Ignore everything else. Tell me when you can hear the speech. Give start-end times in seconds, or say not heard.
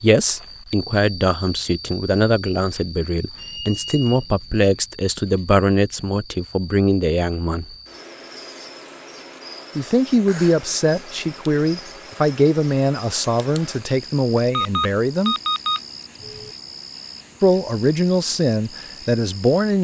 0.0-7.7, 9.8-15.3, 17.4-19.7.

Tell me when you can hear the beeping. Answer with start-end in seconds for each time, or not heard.
3.4-4.5, 14.6-16.6.